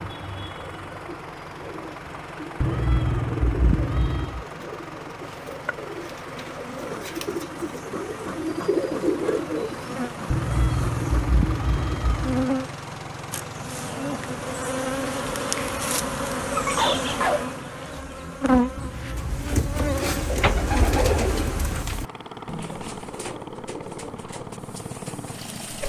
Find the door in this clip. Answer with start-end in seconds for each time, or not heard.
not heard.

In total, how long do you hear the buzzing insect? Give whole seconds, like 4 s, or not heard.
17 s.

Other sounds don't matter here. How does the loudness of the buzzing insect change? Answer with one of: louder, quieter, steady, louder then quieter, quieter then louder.
louder.